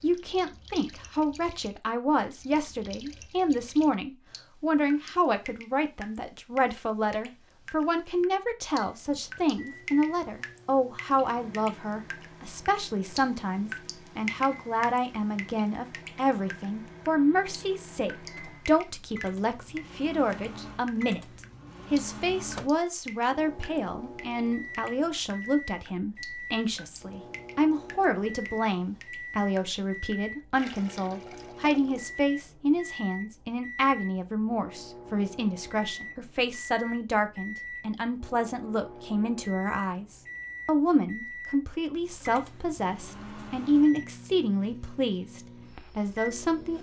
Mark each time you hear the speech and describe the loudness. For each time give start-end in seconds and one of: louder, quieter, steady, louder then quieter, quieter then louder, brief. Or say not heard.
0.0-46.7 steady.